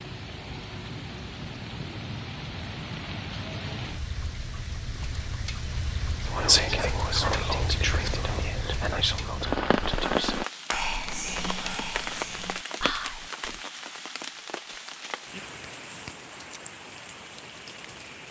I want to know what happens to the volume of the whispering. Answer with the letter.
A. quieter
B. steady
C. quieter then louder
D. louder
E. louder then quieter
A.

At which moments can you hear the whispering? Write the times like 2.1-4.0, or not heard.
6.2-13.6.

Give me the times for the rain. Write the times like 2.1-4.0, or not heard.
0.0-18.2.